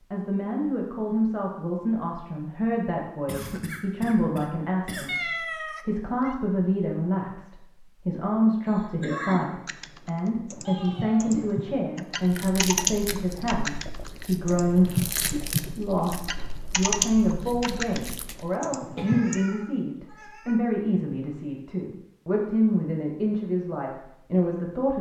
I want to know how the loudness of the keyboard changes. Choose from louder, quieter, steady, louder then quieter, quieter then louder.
louder then quieter.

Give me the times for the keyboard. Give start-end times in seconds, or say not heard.
9.7-19.4.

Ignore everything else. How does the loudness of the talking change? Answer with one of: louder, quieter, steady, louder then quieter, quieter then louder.
steady.